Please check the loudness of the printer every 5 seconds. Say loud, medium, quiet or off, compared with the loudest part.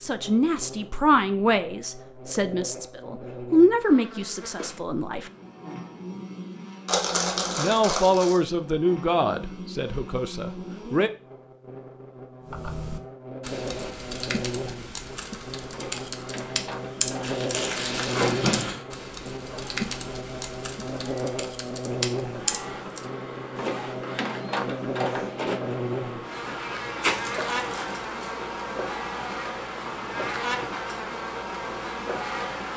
off, off, off, medium, loud, loud, loud.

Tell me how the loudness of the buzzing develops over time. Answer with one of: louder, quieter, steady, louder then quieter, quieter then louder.
louder.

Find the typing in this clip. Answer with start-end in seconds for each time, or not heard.
12.4-23.1.